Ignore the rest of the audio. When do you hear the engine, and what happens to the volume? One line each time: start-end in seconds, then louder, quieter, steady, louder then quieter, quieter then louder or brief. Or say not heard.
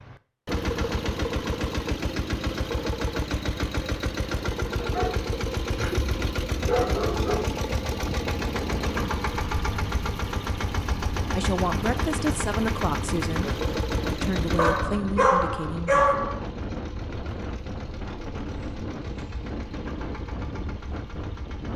0.0-21.7 quieter.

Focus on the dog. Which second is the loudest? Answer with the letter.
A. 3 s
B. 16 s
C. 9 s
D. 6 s
B.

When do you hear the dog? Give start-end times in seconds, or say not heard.
4.8-7.5, 14.6-16.4.